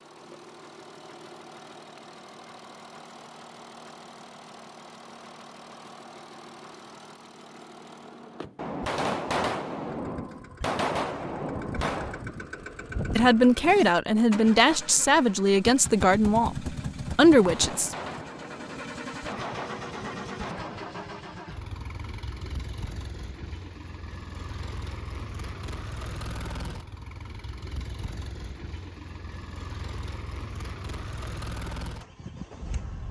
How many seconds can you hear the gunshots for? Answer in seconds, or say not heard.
7 s.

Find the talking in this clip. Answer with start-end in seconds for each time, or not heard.
13.1-17.9.